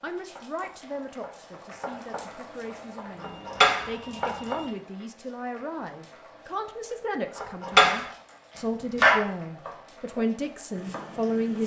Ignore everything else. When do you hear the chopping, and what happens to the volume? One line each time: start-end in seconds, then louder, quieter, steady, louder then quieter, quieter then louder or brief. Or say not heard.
0.0-4.5 louder
7.3-8.1 brief
8.9-11.6 brief.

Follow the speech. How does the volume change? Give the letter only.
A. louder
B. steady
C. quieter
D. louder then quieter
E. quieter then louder
A.